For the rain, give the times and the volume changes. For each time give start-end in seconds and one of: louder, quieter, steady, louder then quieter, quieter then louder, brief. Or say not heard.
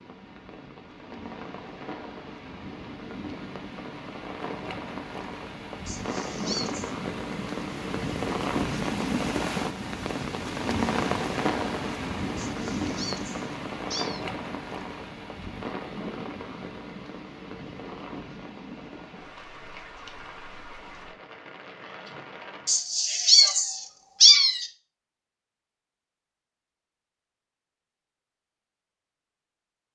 0.0-22.8 louder then quieter.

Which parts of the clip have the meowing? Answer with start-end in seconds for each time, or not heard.
5.8-7.0, 12.3-14.2, 22.6-24.6.